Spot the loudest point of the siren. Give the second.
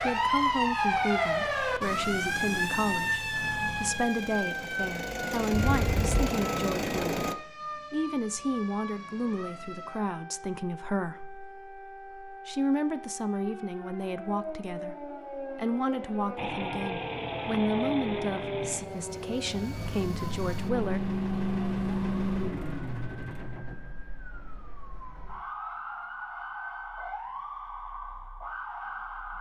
1 s.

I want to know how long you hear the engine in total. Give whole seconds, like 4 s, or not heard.
15 s.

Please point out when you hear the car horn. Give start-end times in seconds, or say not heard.
5.5-6.3.